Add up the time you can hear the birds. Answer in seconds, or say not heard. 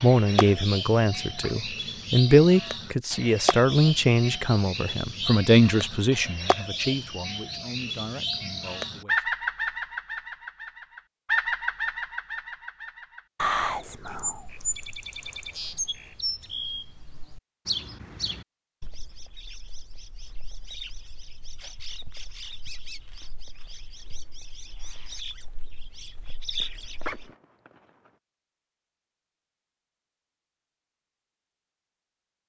27 s.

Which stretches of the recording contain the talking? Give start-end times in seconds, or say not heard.
0.0-9.2.